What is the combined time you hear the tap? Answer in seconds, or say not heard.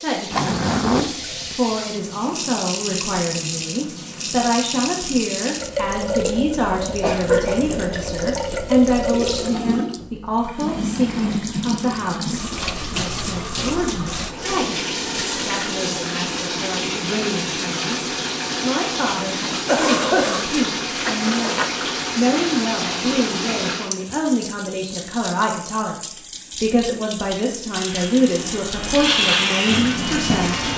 31 s.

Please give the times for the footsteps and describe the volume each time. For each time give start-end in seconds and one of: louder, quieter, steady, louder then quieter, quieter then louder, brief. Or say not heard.
not heard.